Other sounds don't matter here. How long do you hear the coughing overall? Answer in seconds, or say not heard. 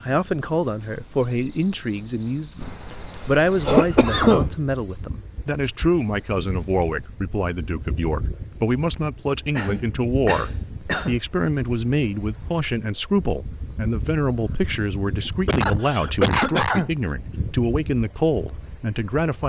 5 s.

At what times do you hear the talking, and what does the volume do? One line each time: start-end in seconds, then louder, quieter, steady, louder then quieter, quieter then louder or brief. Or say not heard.
0.0-19.4 steady.